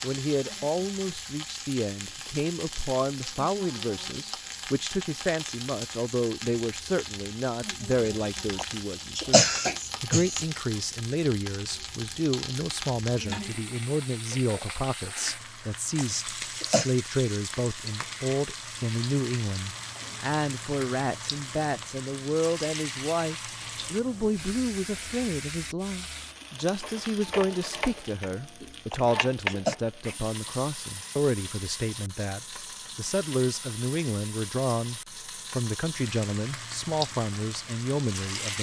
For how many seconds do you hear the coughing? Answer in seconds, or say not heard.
4 s.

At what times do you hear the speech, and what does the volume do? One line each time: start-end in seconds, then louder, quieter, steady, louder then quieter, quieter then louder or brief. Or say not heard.
0.0-38.5 steady.